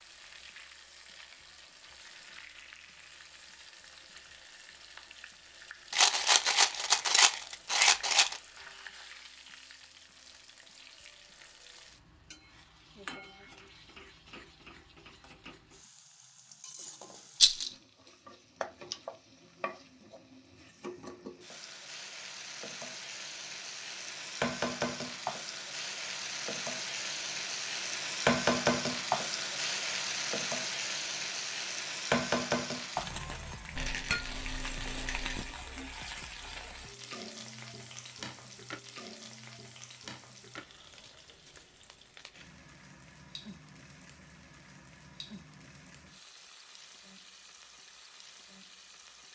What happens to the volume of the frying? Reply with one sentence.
The loudness of the frying goes up, then down.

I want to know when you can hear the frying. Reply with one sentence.
The frying can be heard from 0.0 to 49.3 s.